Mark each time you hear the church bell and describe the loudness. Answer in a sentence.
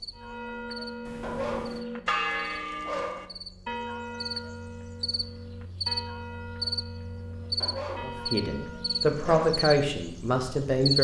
The church bell can be heard from 0.1 to 9.4 s, getting quieter.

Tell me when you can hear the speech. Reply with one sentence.
The speech can be heard from 8.0 to 11.0 s.